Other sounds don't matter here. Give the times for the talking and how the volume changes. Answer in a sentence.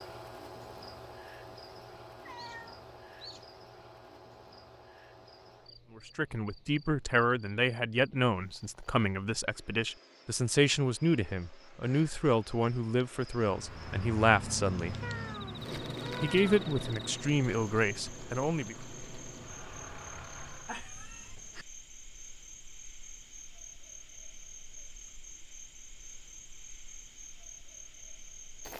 The talking can be heard from 6.0 to 14.9 s, at a steady volume; and briefly from 16.2 to 18.8 s.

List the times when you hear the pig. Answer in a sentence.
You can't hear the pig here.